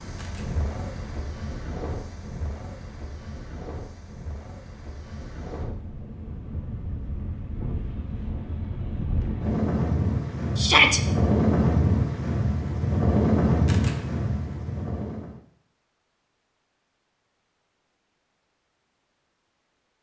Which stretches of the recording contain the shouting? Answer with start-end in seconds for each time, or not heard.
10.6-11.0.